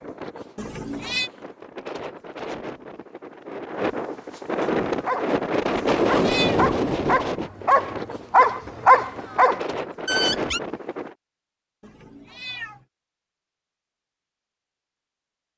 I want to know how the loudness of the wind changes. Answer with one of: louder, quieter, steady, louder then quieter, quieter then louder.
louder then quieter.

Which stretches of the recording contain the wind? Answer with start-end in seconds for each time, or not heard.
0.0-11.2.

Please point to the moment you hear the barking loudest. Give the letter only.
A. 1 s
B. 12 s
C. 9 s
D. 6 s
C.